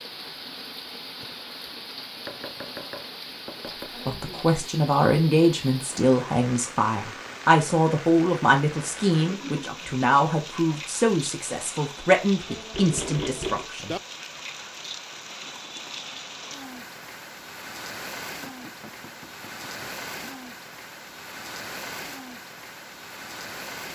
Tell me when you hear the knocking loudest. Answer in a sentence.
The loudest moment of the knocking is at 13 seconds.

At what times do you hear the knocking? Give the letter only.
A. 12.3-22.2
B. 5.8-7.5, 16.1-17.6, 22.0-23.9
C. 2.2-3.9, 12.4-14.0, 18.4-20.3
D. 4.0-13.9
C.